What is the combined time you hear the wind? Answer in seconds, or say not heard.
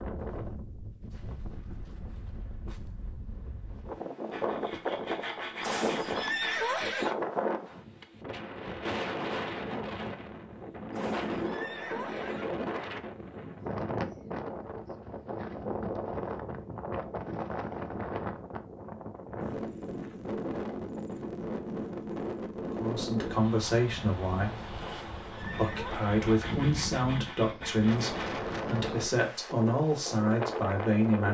31 s.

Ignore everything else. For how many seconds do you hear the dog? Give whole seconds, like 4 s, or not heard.
not heard.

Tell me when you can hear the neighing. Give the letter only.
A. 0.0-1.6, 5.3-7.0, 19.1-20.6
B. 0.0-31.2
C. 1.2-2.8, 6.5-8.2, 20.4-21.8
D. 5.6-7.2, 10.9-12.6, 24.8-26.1
D.